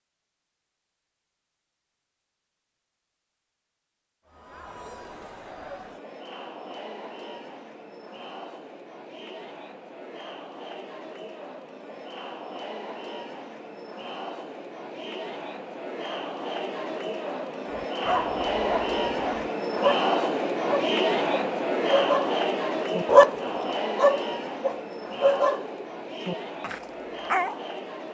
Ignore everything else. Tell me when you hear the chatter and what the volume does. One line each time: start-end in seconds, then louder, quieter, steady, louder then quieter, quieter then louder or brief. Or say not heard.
4.2-28.0 louder then quieter.